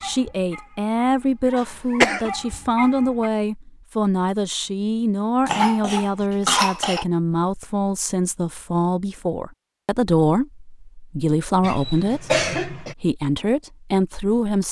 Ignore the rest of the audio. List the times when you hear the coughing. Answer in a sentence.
The coughing can be heard from 1.6 to 2.3 s, from 5.5 to 7.0 s and from 11.6 to 12.9 s.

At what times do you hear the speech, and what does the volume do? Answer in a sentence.
The speech can be heard from 0.0 to 14.6 s, at a steady volume.